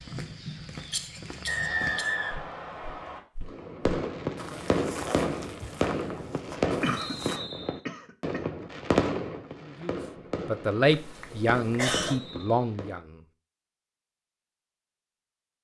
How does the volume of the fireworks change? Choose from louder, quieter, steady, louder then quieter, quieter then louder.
quieter.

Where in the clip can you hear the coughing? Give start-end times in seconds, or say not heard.
0.9-2.1, 6.8-8.4, 10.9-12.2.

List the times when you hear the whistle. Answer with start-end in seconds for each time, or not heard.
1.4-3.2, 7.0-7.8, 12.1-12.7.